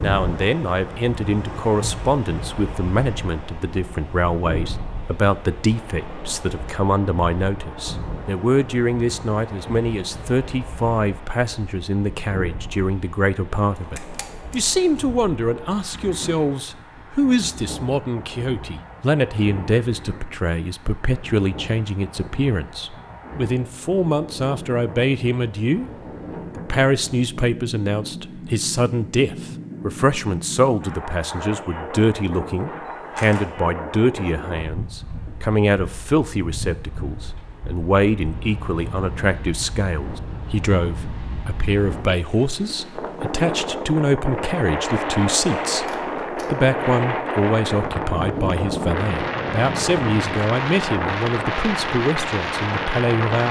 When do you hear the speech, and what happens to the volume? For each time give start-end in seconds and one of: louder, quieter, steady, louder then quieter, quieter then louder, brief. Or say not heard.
0.0-25.9 steady
26.6-53.4 steady.